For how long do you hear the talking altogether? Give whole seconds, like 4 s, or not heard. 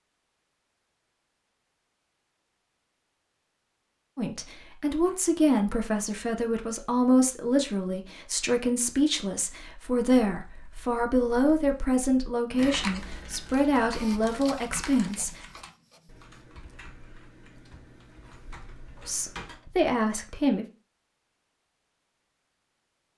13 s.